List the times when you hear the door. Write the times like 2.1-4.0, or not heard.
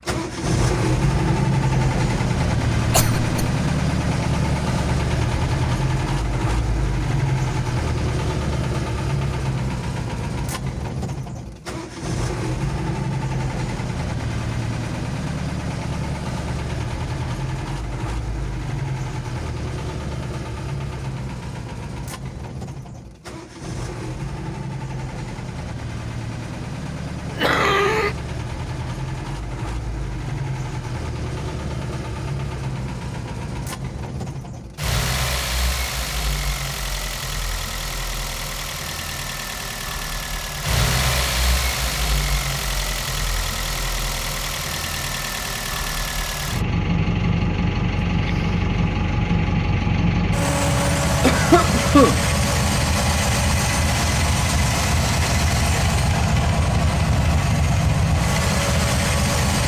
not heard.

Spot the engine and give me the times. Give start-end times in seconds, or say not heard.
0.1-59.6.